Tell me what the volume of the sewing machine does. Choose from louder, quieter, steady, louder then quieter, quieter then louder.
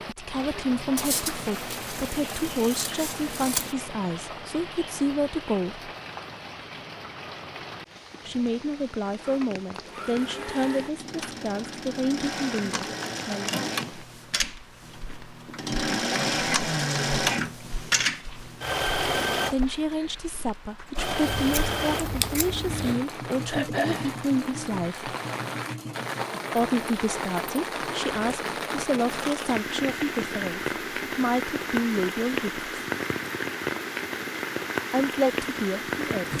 louder then quieter.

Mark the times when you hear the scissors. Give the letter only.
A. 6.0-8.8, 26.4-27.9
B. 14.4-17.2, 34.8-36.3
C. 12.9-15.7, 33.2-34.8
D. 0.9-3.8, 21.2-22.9
D.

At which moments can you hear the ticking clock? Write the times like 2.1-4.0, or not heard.
not heard.